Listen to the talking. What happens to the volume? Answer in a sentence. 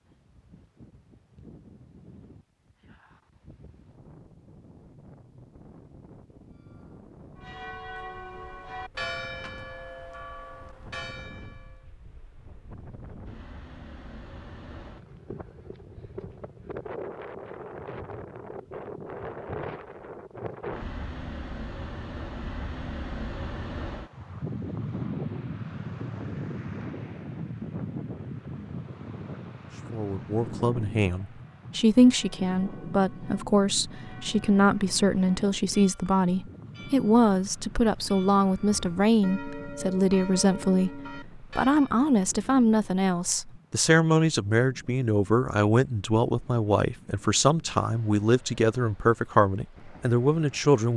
The volume of the talking stays about the same.